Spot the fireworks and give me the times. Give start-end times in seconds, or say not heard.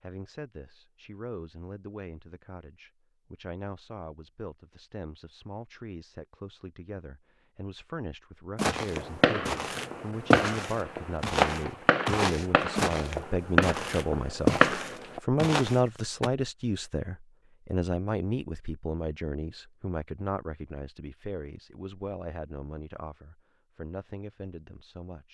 8.9-15.2.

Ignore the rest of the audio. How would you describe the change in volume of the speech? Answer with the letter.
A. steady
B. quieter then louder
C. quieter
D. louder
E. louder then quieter
E.